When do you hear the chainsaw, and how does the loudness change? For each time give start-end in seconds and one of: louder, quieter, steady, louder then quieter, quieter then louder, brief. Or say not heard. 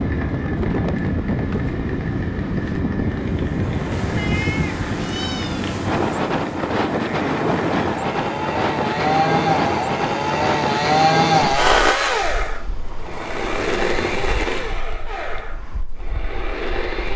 0.0-17.1 louder then quieter.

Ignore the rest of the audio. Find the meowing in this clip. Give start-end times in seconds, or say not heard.
3.9-6.3.